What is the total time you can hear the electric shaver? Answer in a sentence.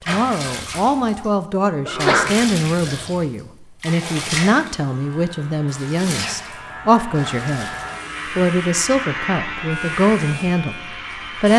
The electric shaver can be heard for 7 seconds in total.